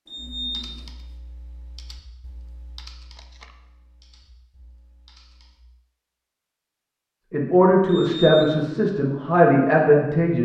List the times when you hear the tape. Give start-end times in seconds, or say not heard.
3.1-3.5.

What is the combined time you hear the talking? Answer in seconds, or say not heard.
3 s.